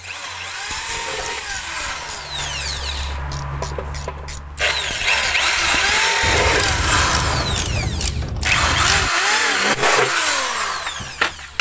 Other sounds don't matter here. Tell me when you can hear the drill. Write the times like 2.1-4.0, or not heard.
0.0-11.5.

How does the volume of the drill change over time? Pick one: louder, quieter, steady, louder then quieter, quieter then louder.
louder.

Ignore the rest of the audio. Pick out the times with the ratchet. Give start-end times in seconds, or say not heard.
0.7-9.1.